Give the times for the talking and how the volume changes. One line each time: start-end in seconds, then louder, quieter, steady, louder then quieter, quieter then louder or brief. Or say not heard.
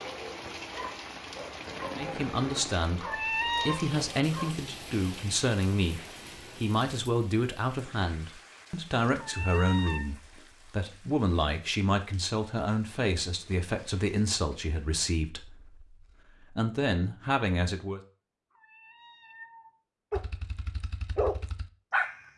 1.9-18.0 steady.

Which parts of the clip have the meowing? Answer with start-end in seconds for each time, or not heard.
3.0-3.8, 9.2-10.1, 18.5-20.2.